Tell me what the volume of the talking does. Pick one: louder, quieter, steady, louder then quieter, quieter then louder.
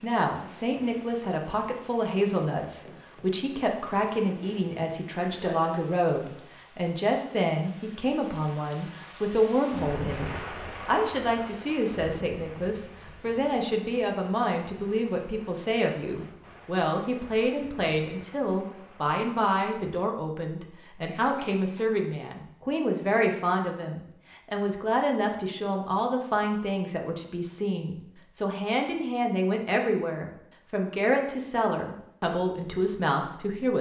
steady.